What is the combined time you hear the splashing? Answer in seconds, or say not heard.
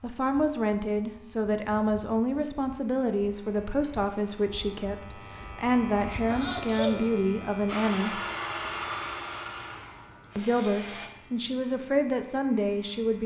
not heard.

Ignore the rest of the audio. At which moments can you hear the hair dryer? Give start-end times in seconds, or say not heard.
7.7-11.1.